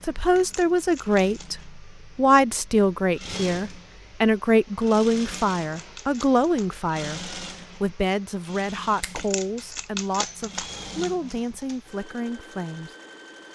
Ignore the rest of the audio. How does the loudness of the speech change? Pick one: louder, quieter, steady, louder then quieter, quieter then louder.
quieter.